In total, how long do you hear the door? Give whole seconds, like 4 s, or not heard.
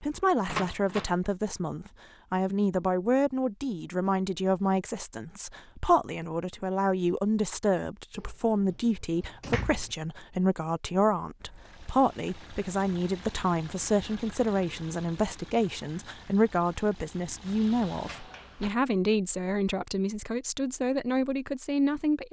4 s.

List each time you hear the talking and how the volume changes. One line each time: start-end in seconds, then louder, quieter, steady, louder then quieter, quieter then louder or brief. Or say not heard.
0.0-22.2 steady.